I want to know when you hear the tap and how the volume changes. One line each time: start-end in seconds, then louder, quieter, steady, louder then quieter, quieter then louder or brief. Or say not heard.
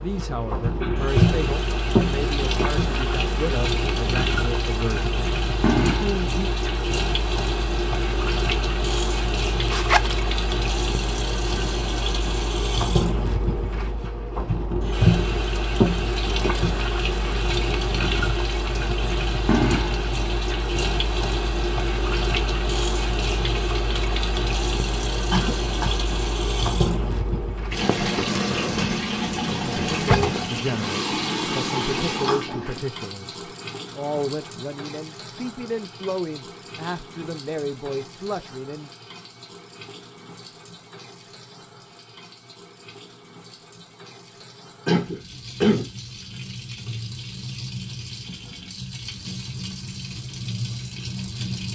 0.0-51.7 quieter.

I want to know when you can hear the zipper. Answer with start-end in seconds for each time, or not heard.
9.7-10.2, 29.9-30.4.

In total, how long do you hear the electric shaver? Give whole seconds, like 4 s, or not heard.
not heard.